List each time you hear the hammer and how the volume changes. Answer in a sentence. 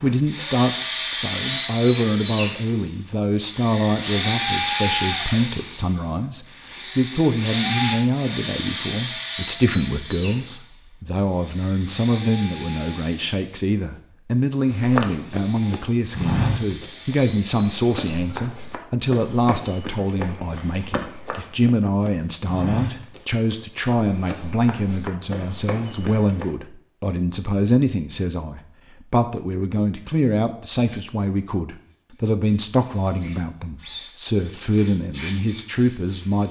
The hammer can't be heard in this clip.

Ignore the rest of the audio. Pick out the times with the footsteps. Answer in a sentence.
The footsteps can be heard from 14.7 to 26.4 s.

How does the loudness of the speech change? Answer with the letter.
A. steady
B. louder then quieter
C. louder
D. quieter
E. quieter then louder
A.